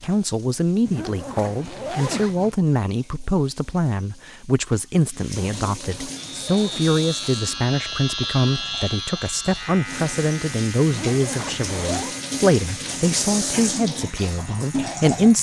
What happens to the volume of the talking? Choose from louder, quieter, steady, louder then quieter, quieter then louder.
steady.